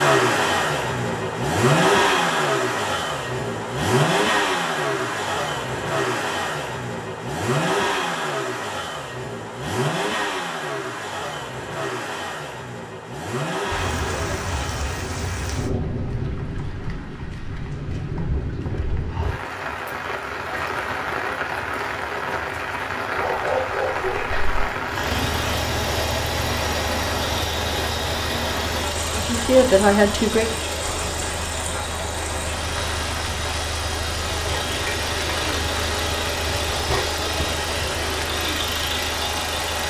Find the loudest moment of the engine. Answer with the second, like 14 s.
2 s.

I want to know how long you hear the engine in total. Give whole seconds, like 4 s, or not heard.
30 s.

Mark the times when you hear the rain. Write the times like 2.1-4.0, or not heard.
13.7-39.8.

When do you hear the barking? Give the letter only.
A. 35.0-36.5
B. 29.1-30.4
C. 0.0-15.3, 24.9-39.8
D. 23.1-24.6
D.